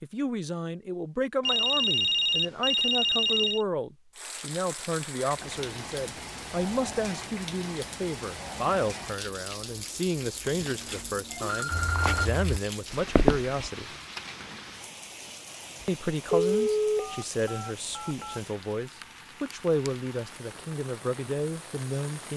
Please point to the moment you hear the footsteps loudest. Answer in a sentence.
The volume of the footsteps peaks at 13 seconds.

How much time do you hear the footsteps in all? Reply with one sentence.
The footsteps can be heard for 2 seconds in total.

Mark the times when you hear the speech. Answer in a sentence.
The speech can be heard from 0.0 to 13.9 s and from 15.8 to 22.3 s.